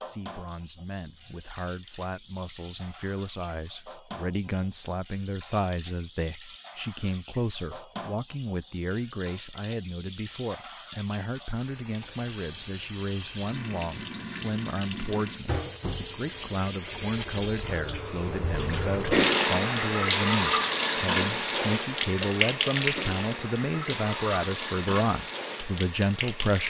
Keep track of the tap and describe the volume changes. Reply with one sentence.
The volume of the tap goes up.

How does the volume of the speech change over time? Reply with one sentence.
The volume of the speech goes up.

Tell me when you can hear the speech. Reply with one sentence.
The speech can be heard from 0.0 to 26.6 s.